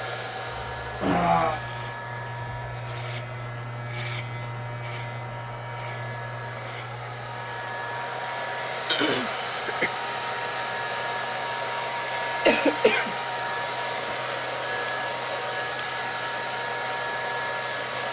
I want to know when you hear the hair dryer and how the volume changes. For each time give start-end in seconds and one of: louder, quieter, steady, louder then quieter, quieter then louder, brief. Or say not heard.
0.0-18.0 louder.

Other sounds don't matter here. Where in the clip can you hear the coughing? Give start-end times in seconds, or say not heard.
1.0-1.6, 8.8-9.9, 12.4-13.2.